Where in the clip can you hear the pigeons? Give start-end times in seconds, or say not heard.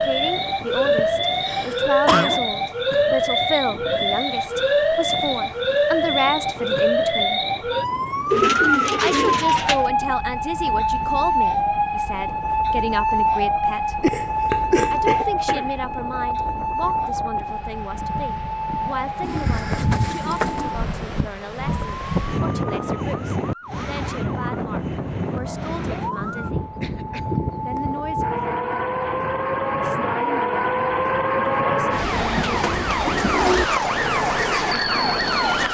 8.3-9.8, 19.2-20.7, 32.1-33.6.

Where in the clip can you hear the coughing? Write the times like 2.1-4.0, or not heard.
0.9-2.4, 14.0-15.7, 26.6-27.4.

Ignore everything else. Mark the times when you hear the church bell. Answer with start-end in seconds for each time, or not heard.
not heard.